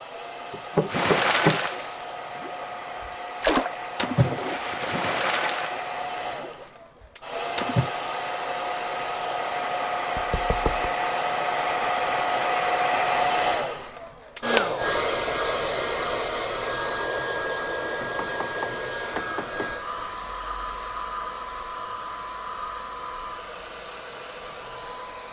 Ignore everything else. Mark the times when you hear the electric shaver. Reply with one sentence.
You can't hear the electric shaver here.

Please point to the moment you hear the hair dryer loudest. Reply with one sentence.
The volume of the hair dryer peaks at 13 seconds.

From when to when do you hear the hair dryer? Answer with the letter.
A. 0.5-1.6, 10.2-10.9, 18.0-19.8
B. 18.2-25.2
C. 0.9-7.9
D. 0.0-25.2
D.